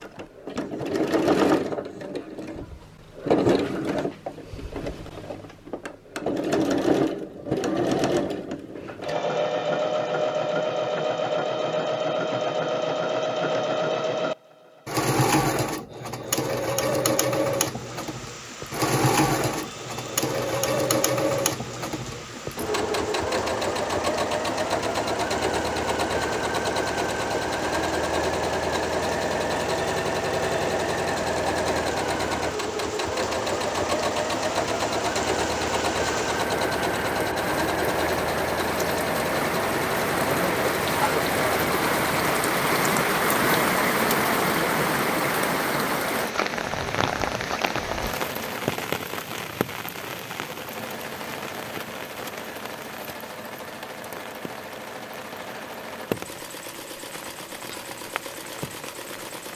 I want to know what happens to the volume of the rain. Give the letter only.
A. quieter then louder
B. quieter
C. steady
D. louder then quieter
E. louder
D.